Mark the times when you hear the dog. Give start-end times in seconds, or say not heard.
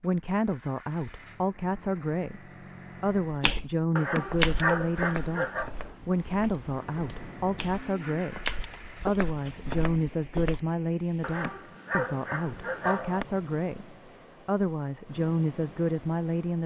4.0-5.7, 11.2-13.2.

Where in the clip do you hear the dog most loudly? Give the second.
5 s.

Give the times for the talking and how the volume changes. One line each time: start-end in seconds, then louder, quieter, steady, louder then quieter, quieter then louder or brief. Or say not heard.
0.0-16.6 steady.